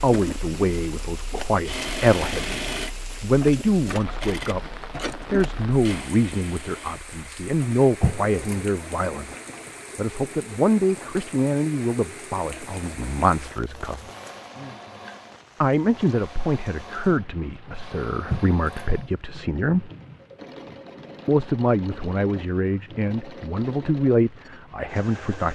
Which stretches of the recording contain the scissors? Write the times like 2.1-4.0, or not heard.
8.0-8.7, 18.2-18.9.